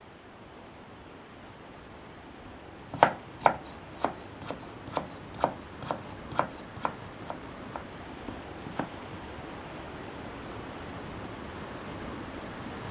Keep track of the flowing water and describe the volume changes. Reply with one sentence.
The volume of the flowing water goes up.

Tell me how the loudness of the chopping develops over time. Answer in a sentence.
The volume of the chopping goes down.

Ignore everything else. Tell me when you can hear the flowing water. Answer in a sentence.
You can hear the flowing water from 0.0 to 12.8 s.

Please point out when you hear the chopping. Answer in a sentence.
You can hear the chopping from 2.9 to 8.9 s.